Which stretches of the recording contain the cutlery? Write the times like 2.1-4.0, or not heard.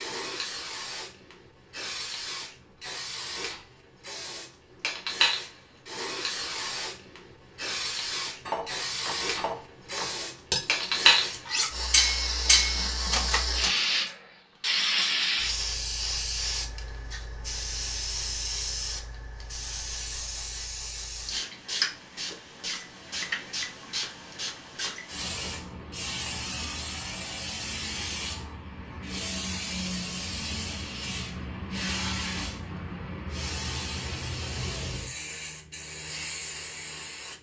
8.4-14.1.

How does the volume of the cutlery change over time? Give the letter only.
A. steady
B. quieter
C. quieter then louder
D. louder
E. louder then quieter
E.